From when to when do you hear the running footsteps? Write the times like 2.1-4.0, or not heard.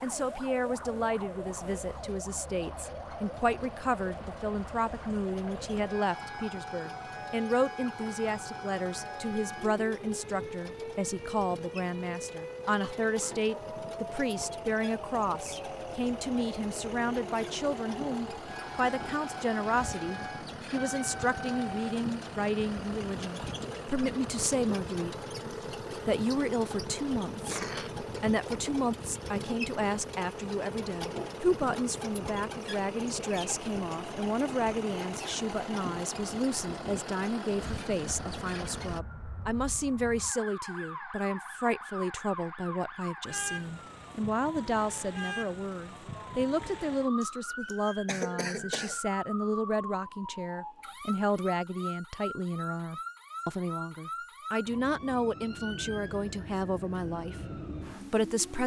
not heard.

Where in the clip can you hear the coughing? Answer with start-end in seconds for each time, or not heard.
12.7-13.4, 27.3-28.0, 47.2-49.0.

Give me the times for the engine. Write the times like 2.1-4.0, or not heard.
0.0-39.0.